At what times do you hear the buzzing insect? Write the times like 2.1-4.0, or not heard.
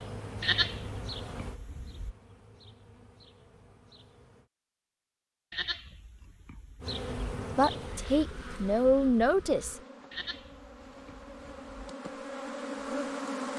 0.0-4.5, 6.8-13.5.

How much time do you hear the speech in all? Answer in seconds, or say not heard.
2 s.